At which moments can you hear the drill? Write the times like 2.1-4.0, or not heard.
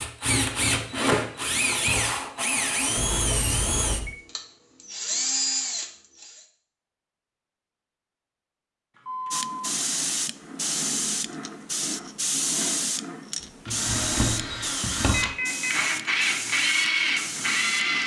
0.0-6.5, 13.4-18.0.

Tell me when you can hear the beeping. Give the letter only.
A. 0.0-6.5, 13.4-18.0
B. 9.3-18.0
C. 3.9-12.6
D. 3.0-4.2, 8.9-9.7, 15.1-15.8
D.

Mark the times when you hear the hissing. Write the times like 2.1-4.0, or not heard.
9.3-18.0.